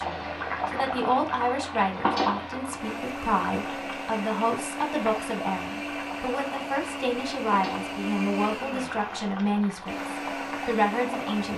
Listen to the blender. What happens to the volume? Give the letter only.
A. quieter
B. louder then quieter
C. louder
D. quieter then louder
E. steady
C.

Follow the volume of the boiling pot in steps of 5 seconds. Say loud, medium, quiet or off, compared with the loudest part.
loud, medium, medium.